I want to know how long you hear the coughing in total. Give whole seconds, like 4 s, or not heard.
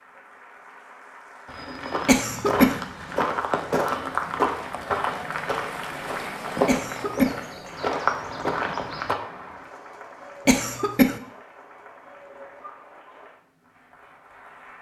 2 s.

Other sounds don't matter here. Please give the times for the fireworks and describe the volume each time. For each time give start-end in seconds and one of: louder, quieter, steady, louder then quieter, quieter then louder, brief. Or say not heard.
not heard.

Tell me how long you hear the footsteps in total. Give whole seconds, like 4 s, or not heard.
8 s.